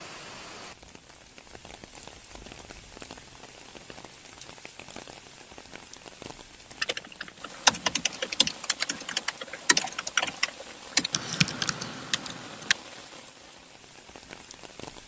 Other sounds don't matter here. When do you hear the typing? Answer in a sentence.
The typing can be heard from 6.8 to 12.8 s.